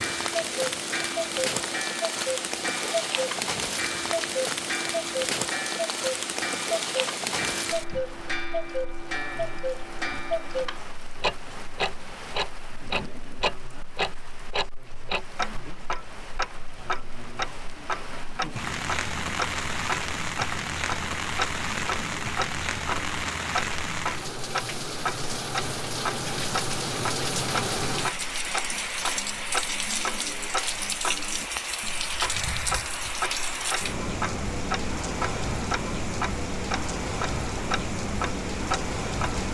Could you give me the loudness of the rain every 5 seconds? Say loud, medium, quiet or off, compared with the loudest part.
loud, loud, quiet, medium, loud, loud, loud, loud.